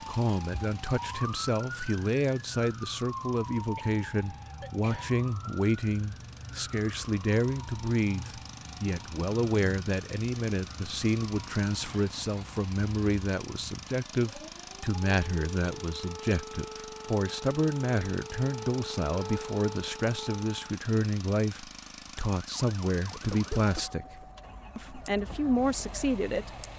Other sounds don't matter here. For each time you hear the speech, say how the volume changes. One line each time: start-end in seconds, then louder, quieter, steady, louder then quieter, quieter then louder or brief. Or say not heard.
0.1-26.5 steady.